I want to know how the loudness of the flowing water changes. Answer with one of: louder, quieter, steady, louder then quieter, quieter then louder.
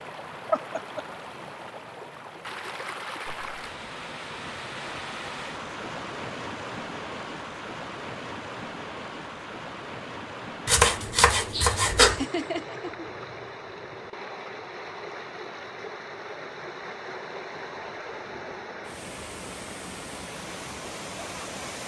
steady.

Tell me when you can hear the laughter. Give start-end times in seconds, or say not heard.
0.5-1.0, 12.0-13.1.